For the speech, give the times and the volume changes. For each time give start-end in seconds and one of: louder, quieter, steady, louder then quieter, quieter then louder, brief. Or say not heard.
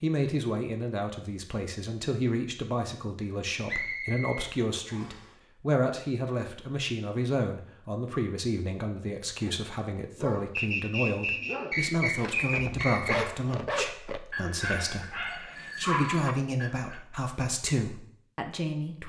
0.0-19.0 steady.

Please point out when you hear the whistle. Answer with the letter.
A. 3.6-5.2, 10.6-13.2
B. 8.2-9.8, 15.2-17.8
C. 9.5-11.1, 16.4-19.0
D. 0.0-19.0
A.